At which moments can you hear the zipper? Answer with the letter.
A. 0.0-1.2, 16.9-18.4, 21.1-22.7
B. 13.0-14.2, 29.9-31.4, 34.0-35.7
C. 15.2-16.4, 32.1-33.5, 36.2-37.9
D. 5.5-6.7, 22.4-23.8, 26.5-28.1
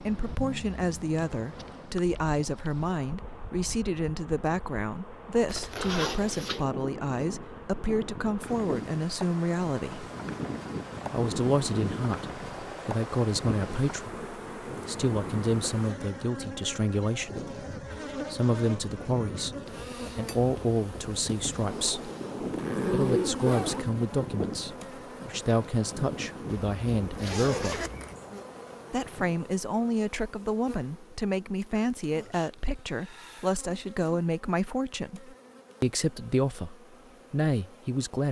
D.